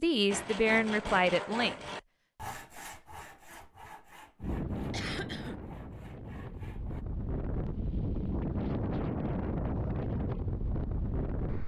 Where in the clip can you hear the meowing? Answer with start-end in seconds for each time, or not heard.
not heard.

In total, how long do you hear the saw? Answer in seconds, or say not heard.
7 s.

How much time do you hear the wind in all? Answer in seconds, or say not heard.
7 s.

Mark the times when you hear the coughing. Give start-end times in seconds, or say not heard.
4.9-5.6.